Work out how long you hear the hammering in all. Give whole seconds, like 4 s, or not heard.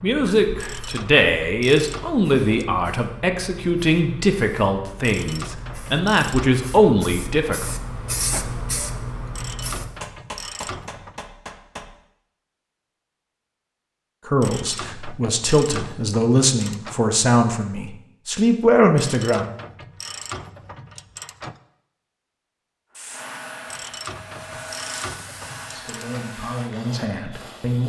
2 s.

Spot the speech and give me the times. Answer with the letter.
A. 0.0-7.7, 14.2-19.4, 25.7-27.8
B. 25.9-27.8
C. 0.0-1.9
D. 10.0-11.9
A.